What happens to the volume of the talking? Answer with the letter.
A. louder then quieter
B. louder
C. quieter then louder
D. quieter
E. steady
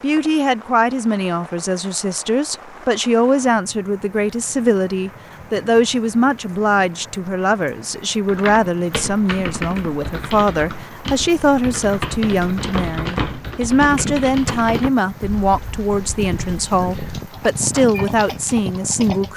E.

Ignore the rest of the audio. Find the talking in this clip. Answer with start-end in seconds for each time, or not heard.
0.0-19.3.